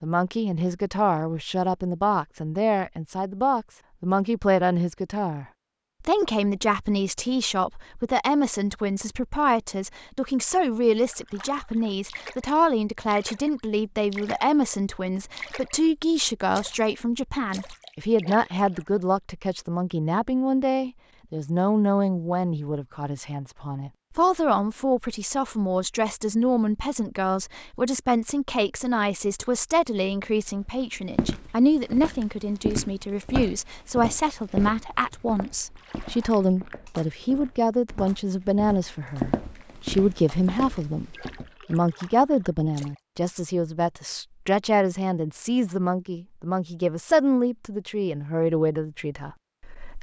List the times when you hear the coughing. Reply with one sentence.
You can't hear the coughing here.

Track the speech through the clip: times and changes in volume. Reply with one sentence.
The speech can be heard from 0.0 to 49.9 s, at a steady volume.